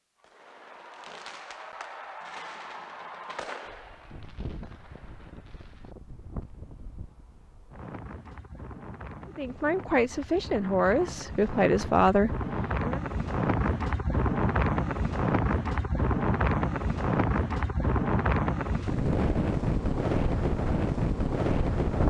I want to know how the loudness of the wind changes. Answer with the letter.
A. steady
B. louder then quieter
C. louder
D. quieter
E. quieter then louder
C.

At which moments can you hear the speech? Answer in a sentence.
The speech can be heard from 9.2 to 13.0 s.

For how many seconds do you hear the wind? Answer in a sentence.
You can hear the wind for 18 seconds altogether.